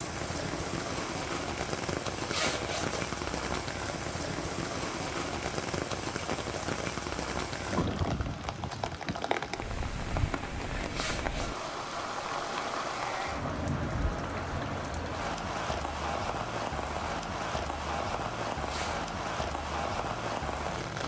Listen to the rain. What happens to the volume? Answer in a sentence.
The volume of the rain stays about the same.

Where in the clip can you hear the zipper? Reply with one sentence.
You can hear the zipper from 2.1 to 3.0 s, from 10.8 to 11.5 s and from 18.6 to 19.1 s.